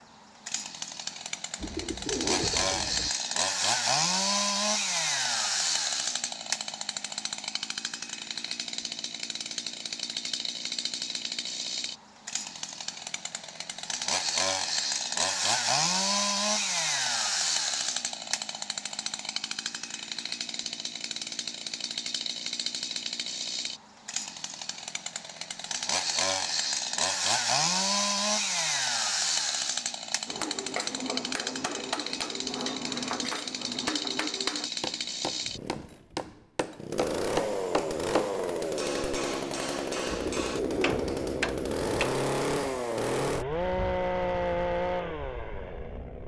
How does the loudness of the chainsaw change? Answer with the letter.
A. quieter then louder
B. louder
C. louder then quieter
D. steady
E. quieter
D.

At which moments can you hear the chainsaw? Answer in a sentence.
You can hear the chainsaw from 0.0 to 46.2 s.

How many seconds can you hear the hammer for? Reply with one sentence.
The hammer can be heard for 12 seconds in total.